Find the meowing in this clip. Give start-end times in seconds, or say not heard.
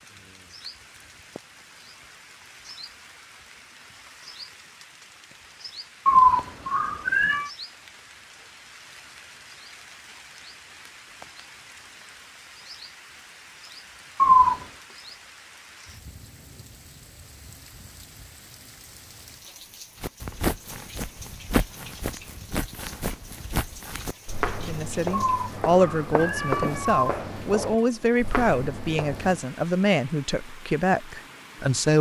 6.0-7.5, 14.2-14.7, 25.1-27.1.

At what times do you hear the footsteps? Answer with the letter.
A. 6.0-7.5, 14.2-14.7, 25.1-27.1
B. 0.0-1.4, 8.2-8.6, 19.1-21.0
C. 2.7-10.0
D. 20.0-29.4
D.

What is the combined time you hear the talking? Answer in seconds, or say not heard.
7 s.